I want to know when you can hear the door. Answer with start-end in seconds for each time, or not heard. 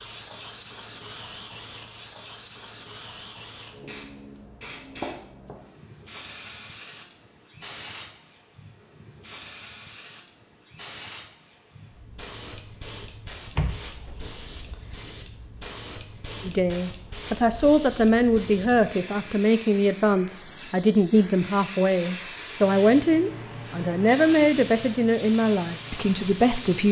13.6-14.9.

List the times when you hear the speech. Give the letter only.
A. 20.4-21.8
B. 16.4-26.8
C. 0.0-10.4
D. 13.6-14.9
B.